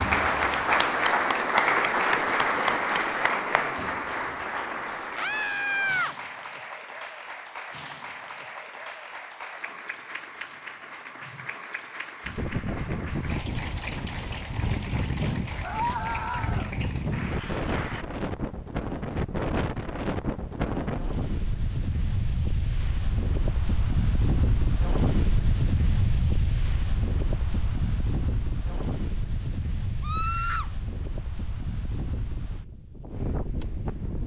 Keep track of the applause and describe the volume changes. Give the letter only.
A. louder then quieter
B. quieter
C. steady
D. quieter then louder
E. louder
B.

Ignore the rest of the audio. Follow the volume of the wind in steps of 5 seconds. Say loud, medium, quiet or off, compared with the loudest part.
off, off, loud, loud, loud, loud, medium.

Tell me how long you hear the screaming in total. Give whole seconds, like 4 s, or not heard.
3 s.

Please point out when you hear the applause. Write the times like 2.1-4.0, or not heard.
0.0-18.1.